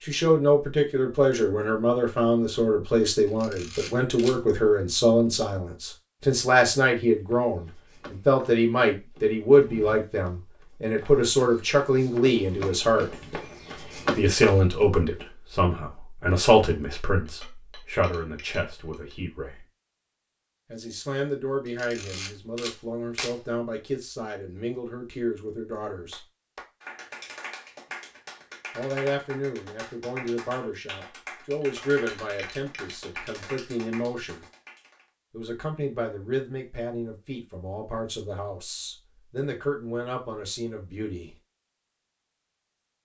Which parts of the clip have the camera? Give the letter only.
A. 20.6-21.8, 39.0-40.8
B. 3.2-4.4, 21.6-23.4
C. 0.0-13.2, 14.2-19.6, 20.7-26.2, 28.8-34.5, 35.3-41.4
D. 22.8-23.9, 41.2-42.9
B.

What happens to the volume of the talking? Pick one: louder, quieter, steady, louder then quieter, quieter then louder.
quieter.